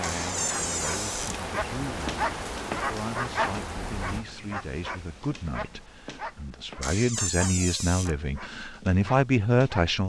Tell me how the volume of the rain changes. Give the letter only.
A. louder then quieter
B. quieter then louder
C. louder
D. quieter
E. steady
D.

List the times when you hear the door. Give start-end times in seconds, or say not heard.
0.0-1.4, 6.8-8.1.